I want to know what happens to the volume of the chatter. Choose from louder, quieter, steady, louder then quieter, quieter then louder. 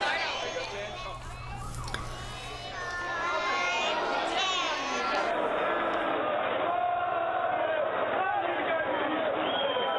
louder.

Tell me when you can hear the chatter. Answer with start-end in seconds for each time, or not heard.
0.0-9.9.